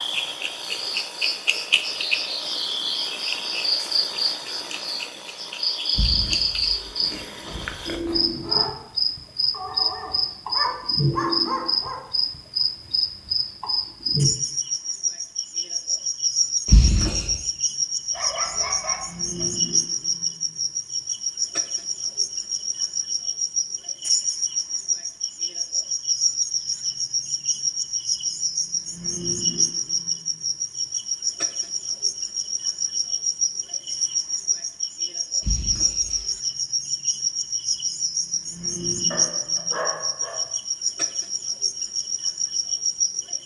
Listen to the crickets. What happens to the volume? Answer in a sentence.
The loudness of the crickets stays about the same.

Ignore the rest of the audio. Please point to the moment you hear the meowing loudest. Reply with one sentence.
The volume of the meowing peaks at 17 seconds.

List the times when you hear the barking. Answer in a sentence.
You can hear the barking from 9.5 to 12.0 s, from 18.1 to 19.4 s and from 39.1 to 40.4 s.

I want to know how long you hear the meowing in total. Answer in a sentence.
You can hear the meowing for 4 seconds altogether.